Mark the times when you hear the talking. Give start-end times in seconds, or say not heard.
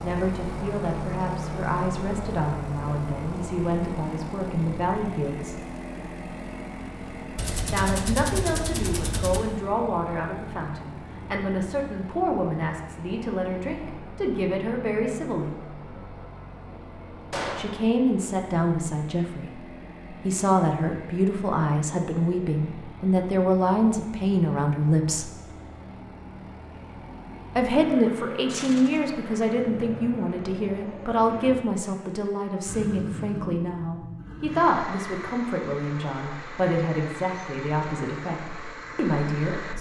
0.0-5.7, 7.7-15.6, 17.6-19.5, 20.2-25.2, 27.6-39.7.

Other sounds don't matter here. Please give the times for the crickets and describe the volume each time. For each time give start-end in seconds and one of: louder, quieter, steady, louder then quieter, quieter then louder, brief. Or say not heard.
not heard.